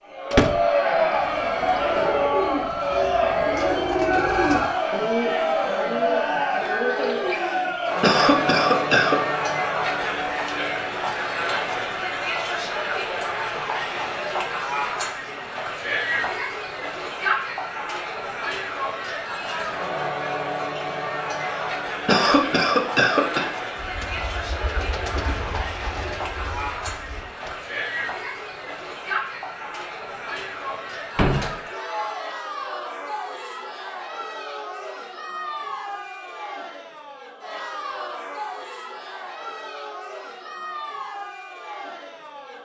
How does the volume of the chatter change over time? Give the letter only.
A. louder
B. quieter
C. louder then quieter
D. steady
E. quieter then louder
B.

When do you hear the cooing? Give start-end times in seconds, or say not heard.
1.1-7.9, 23.8-27.6.